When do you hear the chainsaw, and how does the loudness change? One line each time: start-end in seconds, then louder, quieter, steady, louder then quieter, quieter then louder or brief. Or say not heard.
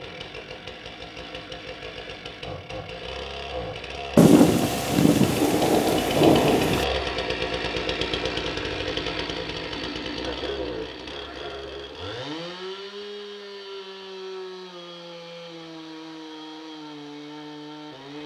0.0-18.2 louder then quieter.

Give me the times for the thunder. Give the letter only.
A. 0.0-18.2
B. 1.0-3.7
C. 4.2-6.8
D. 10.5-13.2
C.